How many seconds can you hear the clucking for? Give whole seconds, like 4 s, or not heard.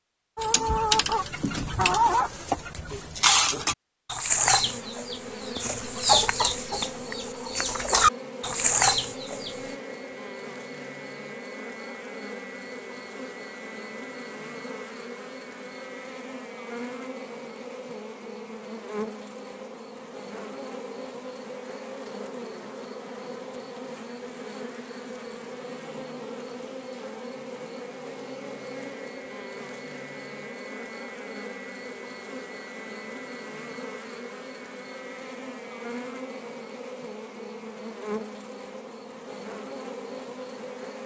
9 s.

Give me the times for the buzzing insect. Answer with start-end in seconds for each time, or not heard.
4.5-41.0.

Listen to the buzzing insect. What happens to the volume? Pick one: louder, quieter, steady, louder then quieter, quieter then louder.
steady.